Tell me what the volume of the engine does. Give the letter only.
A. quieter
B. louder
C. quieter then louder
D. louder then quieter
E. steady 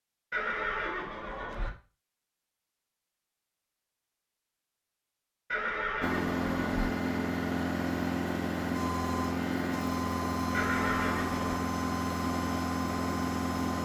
E.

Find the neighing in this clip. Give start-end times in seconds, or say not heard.
0.3-1.7, 5.5-6.9, 10.5-11.5.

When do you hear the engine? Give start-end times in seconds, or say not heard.
6.0-13.8.